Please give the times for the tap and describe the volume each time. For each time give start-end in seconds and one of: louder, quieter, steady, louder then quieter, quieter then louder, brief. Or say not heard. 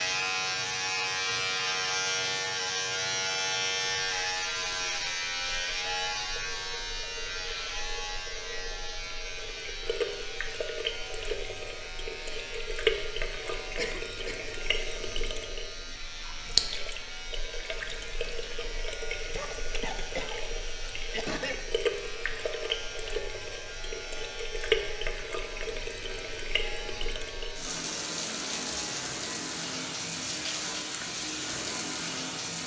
0.0-32.6 louder.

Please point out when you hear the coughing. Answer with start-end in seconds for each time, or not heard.
13.8-14.4, 19.3-21.6.